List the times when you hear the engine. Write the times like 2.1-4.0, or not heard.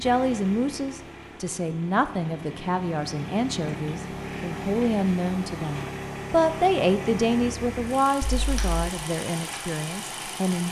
0.0-10.6.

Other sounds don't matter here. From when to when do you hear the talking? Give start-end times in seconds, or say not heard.
0.0-10.6.